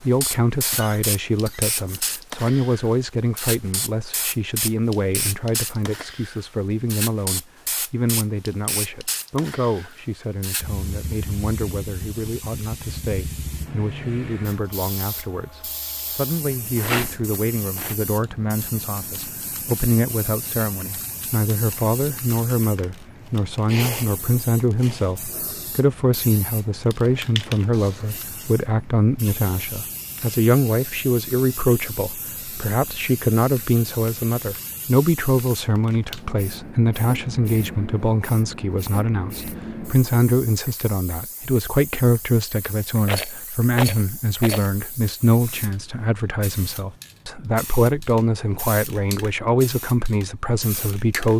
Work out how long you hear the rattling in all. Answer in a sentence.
You can hear the rattling for 3 seconds altogether.